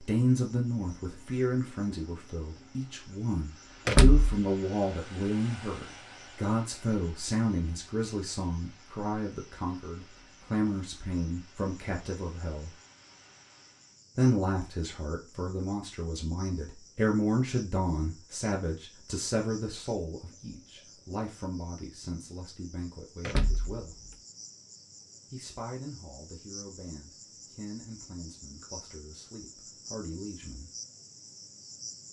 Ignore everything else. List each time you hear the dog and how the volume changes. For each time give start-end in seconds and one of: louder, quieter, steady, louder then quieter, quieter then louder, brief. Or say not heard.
not heard.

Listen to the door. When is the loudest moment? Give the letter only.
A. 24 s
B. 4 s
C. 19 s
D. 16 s
B.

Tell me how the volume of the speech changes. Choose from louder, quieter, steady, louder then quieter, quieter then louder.
quieter.